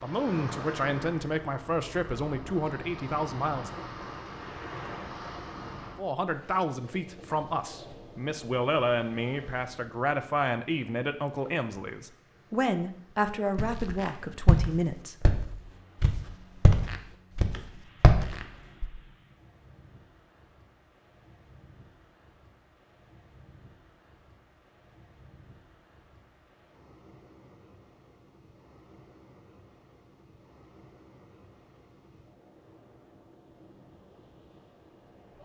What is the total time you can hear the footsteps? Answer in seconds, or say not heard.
5 s.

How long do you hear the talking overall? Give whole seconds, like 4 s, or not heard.
13 s.